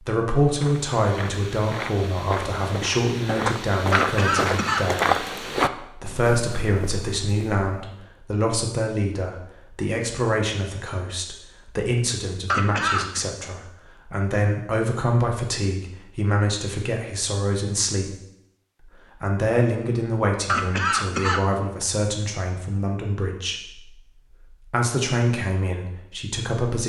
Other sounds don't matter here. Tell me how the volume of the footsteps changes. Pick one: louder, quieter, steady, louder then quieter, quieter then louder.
louder then quieter.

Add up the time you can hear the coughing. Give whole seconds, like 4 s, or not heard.
3 s.